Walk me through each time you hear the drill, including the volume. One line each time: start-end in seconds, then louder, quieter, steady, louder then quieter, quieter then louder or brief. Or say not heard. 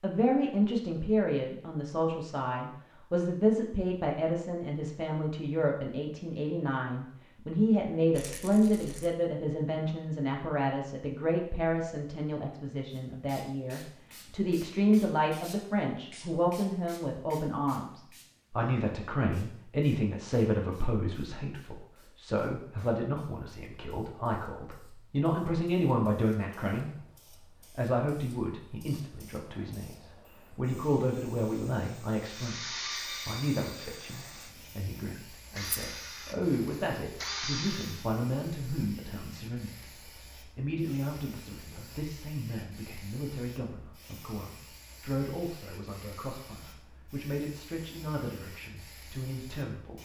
32.2-38.0 quieter then louder.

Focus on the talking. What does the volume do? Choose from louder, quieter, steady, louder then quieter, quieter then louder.
quieter.